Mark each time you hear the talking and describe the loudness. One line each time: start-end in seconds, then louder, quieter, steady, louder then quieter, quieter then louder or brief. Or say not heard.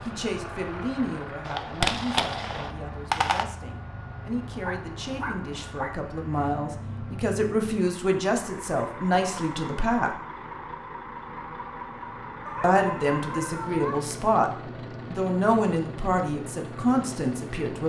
0.1-10.2 quieter then louder
12.6-14.5 brief
15.1-17.8 brief.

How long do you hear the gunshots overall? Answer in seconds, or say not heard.
2 s.